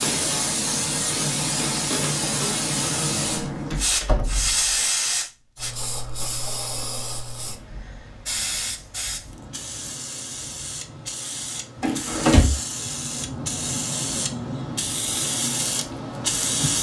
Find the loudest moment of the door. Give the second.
12 s.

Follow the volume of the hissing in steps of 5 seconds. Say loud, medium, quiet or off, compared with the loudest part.
loud, medium, medium, loud.